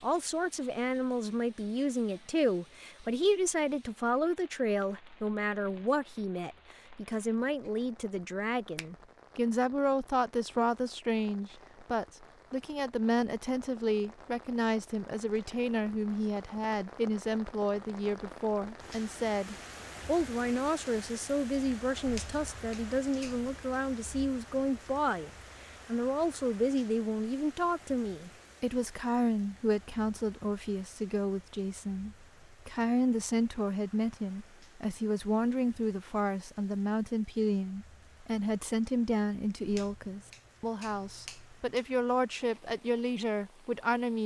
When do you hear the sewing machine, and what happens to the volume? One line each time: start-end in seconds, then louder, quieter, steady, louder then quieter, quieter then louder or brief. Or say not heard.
not heard.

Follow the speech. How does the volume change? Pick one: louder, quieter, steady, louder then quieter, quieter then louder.
steady.